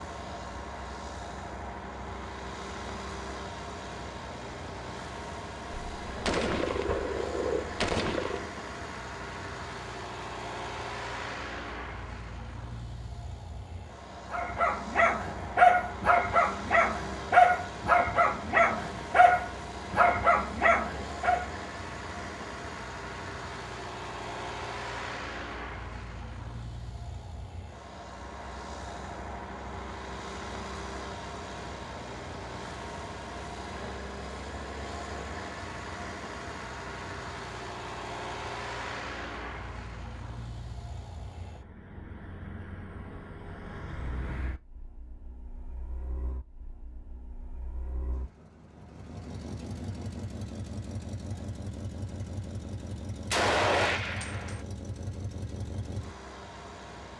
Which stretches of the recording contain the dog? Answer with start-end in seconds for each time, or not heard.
14.3-21.4.